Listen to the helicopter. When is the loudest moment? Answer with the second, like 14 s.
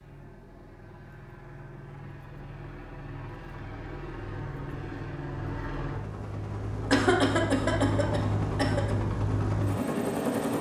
10 s.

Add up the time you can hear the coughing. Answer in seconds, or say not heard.
2 s.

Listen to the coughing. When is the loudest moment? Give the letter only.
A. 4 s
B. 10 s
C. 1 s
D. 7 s
D.